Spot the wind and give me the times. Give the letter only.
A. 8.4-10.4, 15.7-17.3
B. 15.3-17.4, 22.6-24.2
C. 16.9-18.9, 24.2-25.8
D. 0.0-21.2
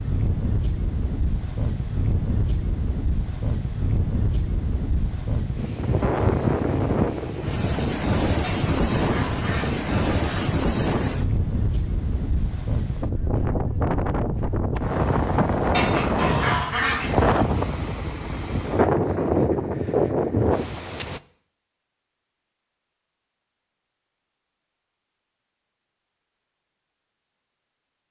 D.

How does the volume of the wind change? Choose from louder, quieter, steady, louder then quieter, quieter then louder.
louder.